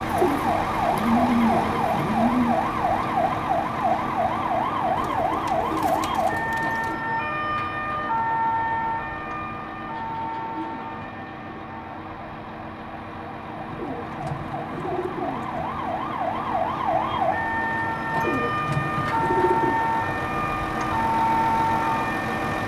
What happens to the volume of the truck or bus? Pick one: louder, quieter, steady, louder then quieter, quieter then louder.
quieter then louder.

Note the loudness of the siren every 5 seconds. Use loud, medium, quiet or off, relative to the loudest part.
loud, loud, medium, loud, loud.